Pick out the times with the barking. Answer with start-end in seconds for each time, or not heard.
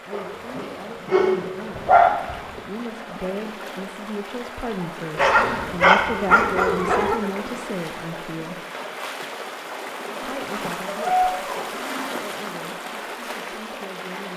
0.1-2.1, 5.2-7.2, 10.8-11.7.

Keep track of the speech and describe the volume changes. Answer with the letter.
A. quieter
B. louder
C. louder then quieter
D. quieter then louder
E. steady
C.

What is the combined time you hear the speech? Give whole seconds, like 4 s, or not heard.
13 s.